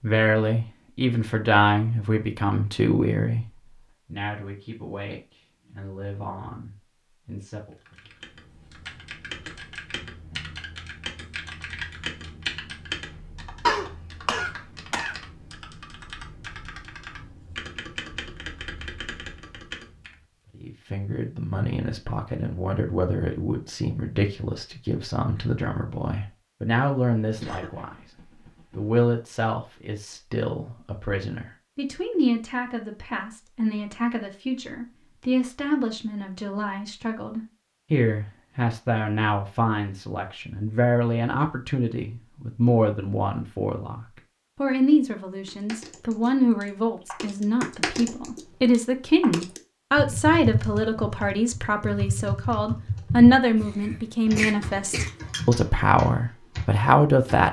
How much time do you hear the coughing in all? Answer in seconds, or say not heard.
5 s.